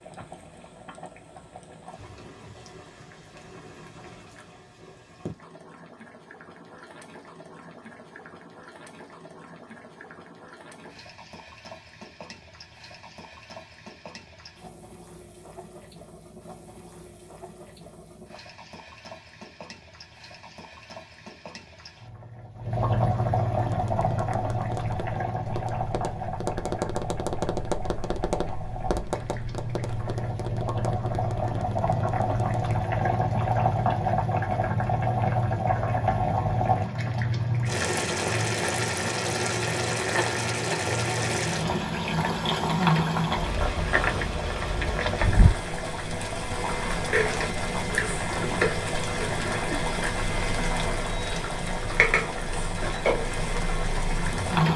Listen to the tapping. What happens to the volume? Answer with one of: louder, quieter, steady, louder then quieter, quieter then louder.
louder then quieter.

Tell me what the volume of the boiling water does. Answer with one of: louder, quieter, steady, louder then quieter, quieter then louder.
louder.